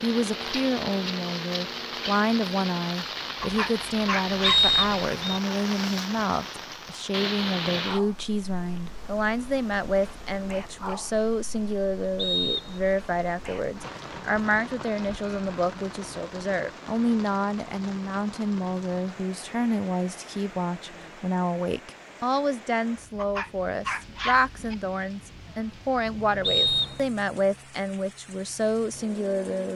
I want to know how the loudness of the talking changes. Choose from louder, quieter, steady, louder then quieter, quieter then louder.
steady.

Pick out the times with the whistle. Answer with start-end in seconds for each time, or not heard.
4.4-5.4, 12.2-12.8, 26.4-27.0.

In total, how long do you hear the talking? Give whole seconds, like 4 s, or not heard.
30 s.